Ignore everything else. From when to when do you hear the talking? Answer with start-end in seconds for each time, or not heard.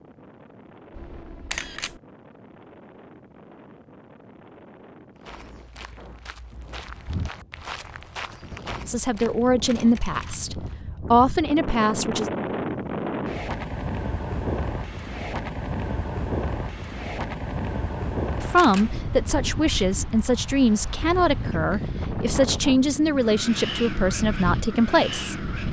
8.8-12.3, 18.4-25.4.